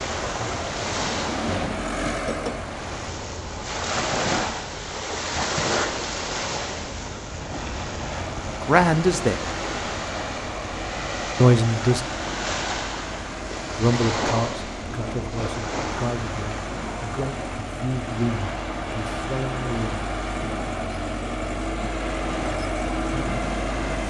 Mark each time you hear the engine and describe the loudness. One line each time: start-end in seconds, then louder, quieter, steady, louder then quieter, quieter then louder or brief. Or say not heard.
0.0-3.0 brief
8.2-24.0 louder.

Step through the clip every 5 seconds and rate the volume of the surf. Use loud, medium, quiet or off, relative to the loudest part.
loud, loud, loud, medium, medium.